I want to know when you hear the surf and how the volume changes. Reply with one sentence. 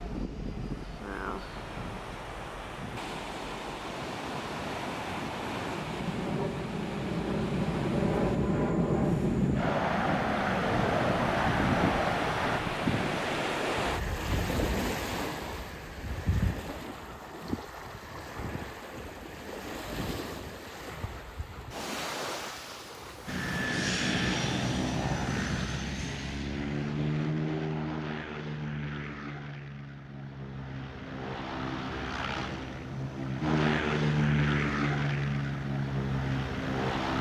The surf can be heard from 0.0 to 25.0 s, getting louder then quieter.